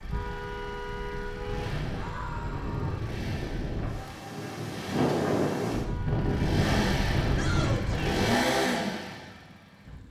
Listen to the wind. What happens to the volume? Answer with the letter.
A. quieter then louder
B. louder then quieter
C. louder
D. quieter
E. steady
C.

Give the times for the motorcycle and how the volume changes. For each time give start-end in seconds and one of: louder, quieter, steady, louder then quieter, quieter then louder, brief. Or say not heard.
0.0-10.0 louder.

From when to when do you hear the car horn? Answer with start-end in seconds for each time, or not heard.
0.1-1.8, 5.8-6.3.